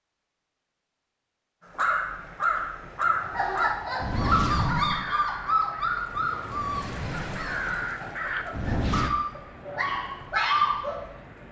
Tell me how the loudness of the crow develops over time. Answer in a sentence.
The volume of the crow goes down, then up.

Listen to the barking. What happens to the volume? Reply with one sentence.
The loudness of the barking goes down, then up.